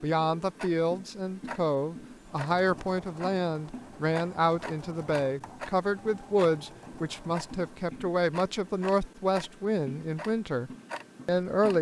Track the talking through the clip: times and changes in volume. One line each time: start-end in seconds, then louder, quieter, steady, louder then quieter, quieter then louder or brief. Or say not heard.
0.0-11.7 steady.